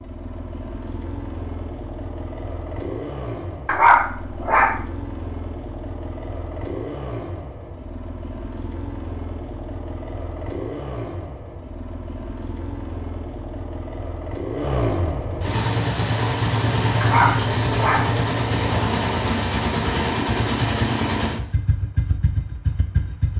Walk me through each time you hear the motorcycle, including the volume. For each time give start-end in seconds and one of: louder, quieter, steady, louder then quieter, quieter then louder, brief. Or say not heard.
0.0-23.3 louder.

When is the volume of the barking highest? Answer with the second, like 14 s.
4 s.